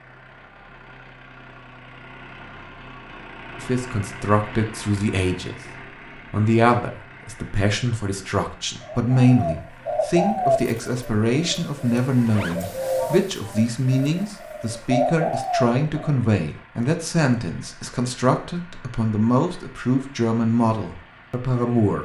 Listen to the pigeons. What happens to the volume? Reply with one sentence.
The loudness of the pigeons goes down, then up.